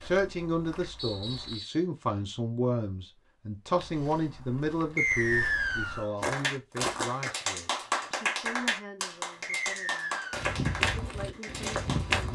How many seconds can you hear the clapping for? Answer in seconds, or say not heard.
6 s.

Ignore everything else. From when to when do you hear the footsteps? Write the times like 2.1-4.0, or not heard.
0.0-1.6, 3.8-7.3, 10.3-12.2.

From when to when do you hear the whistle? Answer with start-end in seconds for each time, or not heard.
0.9-1.8, 5.0-6.1, 9.4-10.4.